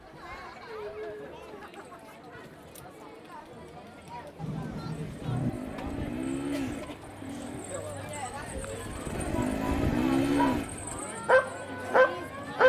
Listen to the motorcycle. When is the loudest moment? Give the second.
10 s.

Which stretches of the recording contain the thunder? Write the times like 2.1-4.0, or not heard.
4.3-5.5.